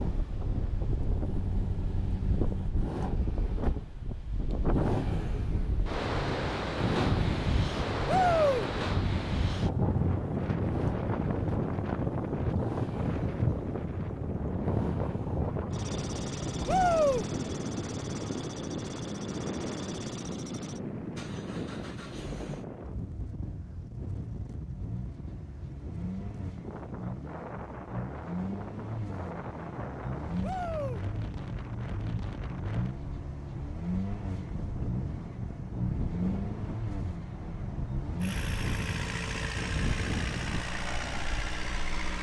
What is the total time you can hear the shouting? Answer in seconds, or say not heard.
2 s.